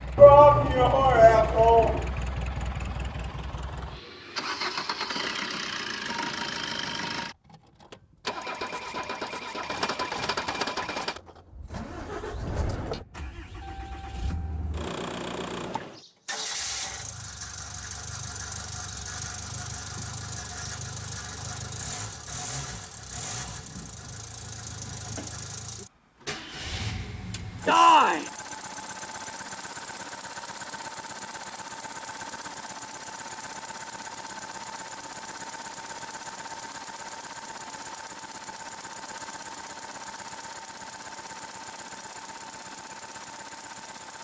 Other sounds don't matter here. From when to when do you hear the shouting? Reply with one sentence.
The shouting can be heard from 0.1 to 2.0 s and from 27.6 to 28.3 s.